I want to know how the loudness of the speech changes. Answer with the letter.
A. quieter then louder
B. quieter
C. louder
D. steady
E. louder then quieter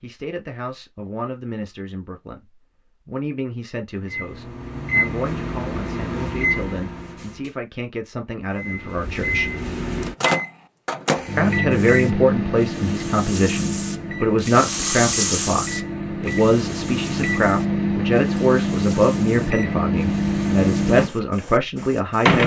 C.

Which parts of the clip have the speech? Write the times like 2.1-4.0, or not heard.
0.0-9.6, 11.3-22.4.